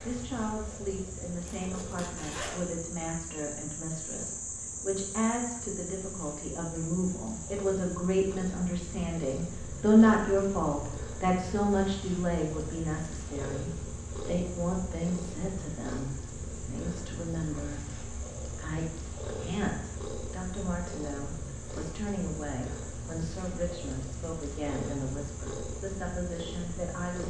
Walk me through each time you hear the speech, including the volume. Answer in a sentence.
The speech can be heard from 0.0 to 27.2 s, getting louder then quieter.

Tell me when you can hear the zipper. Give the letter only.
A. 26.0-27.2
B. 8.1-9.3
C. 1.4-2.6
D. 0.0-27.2
C.